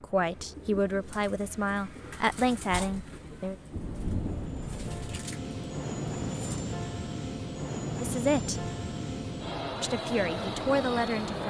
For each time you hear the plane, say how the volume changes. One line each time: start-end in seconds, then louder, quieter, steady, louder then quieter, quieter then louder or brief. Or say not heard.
0.0-11.4 louder.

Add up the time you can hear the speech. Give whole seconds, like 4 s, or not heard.
6 s.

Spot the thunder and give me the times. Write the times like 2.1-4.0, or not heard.
3.7-5.2.